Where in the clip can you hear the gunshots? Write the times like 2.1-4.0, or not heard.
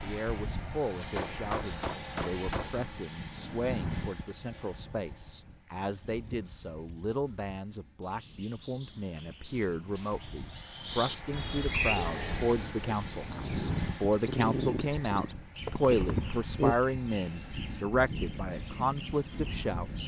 1.0-2.7.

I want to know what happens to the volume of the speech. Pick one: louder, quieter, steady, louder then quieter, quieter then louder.
louder.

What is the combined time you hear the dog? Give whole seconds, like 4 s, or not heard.
5 s.